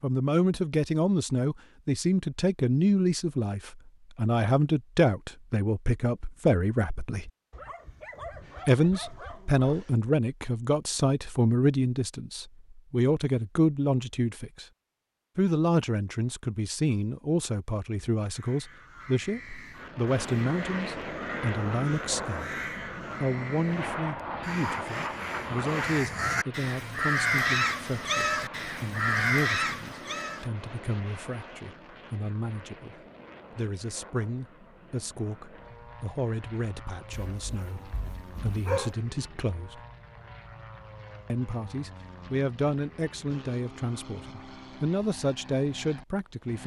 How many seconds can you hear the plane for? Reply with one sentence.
You can hear the plane for 27 seconds altogether.